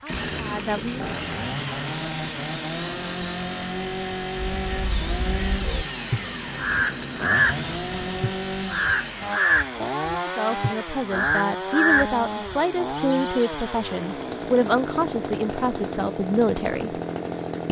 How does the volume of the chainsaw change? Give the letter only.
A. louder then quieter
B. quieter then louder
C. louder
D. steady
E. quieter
D.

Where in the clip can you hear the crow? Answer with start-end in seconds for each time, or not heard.
4.5-13.5.